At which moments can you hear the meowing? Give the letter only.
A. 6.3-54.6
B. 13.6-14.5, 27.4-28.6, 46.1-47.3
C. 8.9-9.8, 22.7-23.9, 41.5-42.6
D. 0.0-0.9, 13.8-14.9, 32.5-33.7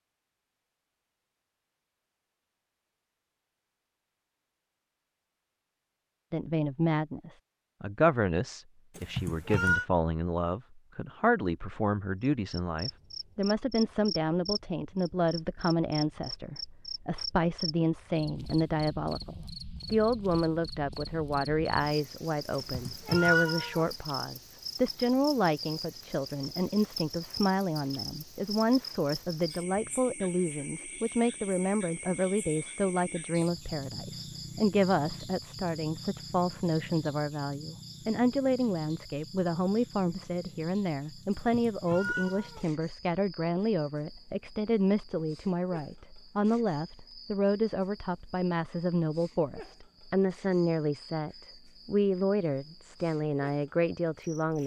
C.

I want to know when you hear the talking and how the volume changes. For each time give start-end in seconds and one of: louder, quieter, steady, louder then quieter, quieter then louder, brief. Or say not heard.
6.3-54.6 steady.